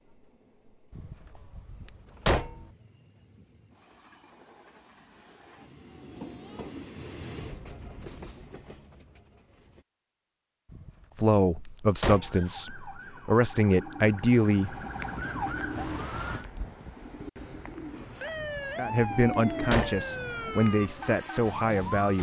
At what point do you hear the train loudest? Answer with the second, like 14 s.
7 s.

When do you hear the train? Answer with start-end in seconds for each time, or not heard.
0.0-9.8.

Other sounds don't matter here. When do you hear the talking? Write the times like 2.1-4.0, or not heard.
11.2-14.8, 18.8-22.1.